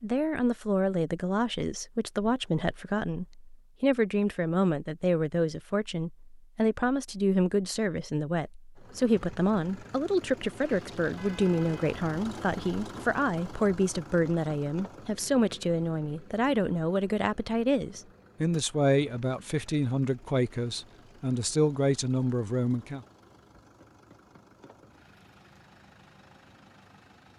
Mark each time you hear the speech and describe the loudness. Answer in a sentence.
The speech can be heard from 0.0 to 23.0 s, at a steady volume.